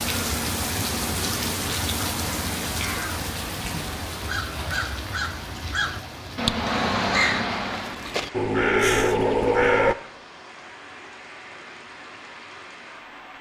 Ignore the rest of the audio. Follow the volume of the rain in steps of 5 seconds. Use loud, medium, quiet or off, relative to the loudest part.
loud, medium, quiet.